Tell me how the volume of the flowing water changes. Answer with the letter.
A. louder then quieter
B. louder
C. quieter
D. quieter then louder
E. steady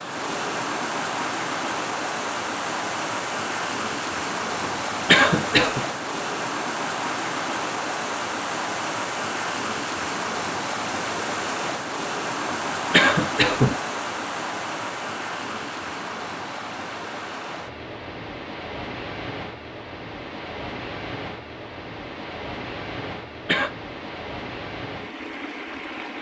C.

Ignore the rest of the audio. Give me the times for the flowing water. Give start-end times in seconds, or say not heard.
0.0-26.1.